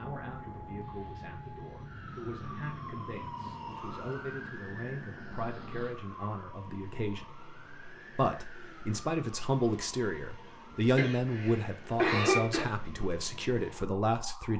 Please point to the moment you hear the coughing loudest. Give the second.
12 s.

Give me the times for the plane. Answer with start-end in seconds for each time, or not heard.
0.0-6.0.